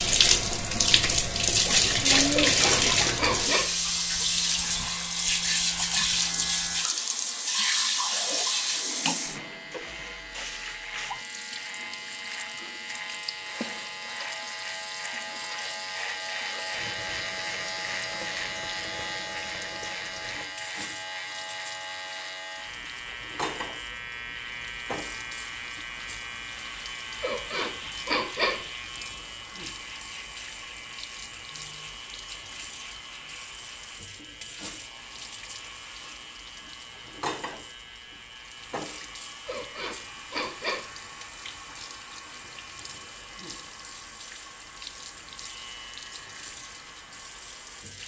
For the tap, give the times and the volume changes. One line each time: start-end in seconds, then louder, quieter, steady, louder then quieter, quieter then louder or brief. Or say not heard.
0.0-48.0 quieter.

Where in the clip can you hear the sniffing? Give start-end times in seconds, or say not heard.
2.3-3.6, 27.2-28.6, 39.5-40.9.